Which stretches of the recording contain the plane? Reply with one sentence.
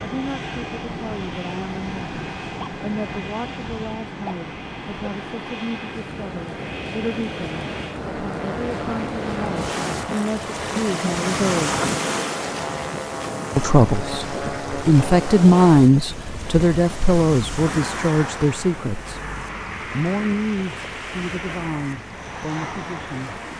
The plane can be heard from 0.0 to 23.5 s.